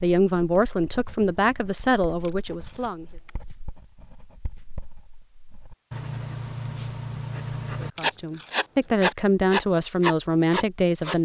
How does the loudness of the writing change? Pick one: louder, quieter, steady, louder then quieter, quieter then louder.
louder.